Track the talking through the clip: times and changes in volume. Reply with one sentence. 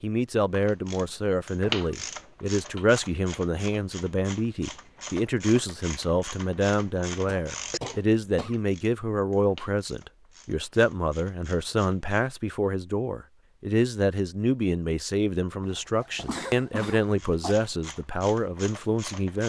The talking can be heard from 0.0 to 19.4 s, at a steady volume.